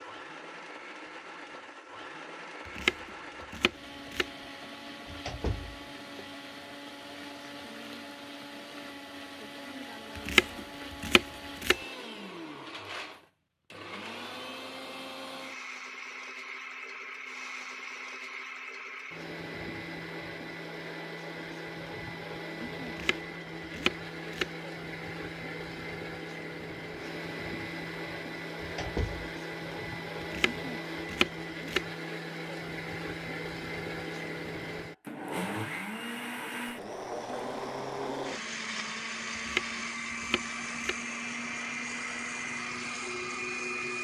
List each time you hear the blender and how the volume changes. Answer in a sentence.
The blender can be heard from 0.0 to 43.9 s, getting louder.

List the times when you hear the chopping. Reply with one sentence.
You can hear the chopping from 2.6 to 4.2 s, from 10.2 to 11.8 s, from 22.9 to 24.5 s, from 30.2 to 31.9 s and from 39.4 to 41.0 s.